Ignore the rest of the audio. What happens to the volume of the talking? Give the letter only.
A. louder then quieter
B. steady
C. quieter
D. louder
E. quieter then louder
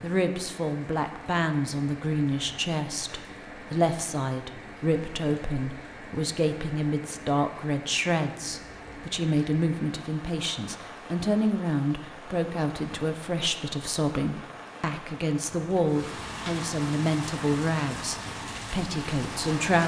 B.